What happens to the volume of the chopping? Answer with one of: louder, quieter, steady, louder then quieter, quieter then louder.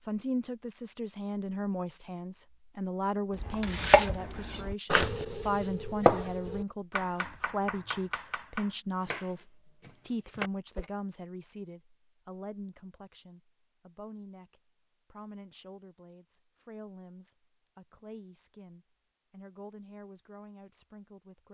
quieter.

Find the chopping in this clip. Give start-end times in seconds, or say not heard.
3.4-10.9.